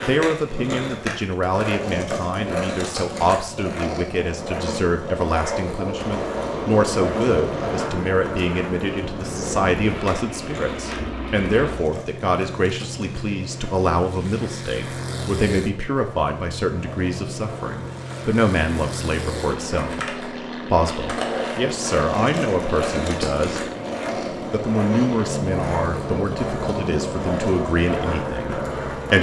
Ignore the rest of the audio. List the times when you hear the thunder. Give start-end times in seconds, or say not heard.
not heard.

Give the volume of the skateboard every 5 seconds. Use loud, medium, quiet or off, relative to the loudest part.
loud, loud, medium, medium, loud, loud.